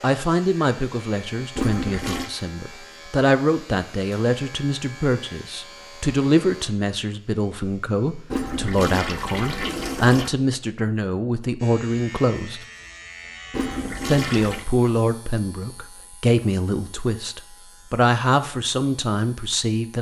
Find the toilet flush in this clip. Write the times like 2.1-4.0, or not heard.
1.6-2.3, 8.3-10.3, 13.5-14.7.